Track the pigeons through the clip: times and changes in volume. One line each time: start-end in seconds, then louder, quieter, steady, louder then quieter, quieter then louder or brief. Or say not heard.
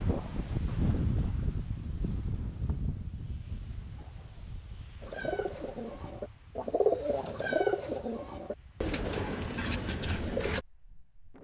5.0-10.7 louder then quieter.